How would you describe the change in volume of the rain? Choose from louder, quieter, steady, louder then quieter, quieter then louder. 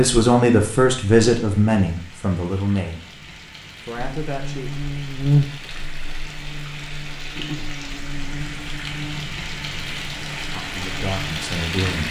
louder.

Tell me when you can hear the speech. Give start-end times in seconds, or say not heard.
0.0-4.8, 10.5-12.0.